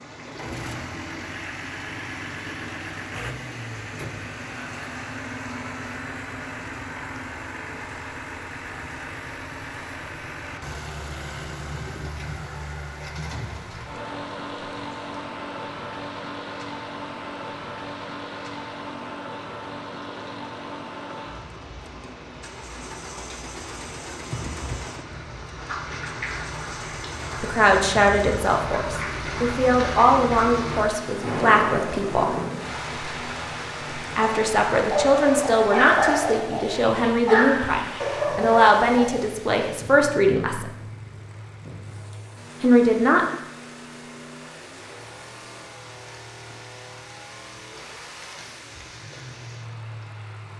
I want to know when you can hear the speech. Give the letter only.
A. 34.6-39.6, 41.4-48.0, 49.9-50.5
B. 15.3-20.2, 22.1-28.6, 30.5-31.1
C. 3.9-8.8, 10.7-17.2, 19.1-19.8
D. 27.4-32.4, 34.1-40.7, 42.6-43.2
D.